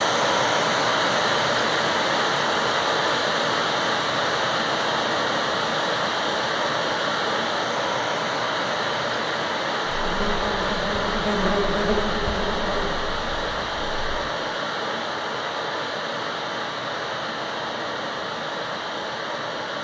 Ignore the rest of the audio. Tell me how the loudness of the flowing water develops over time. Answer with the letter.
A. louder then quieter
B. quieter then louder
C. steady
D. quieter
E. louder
D.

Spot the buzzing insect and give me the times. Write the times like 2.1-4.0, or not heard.
9.9-14.2.